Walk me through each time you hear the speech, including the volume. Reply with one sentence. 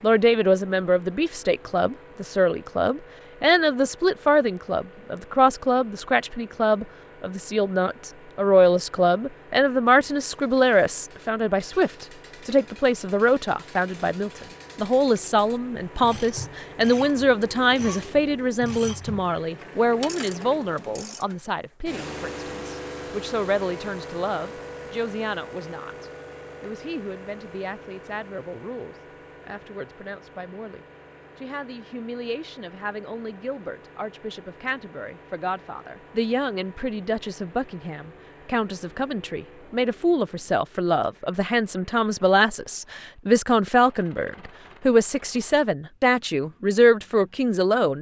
The speech can be heard from 0.0 to 47.9 s, getting quieter then louder.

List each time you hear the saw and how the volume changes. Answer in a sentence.
The saw can't be heard in this clip.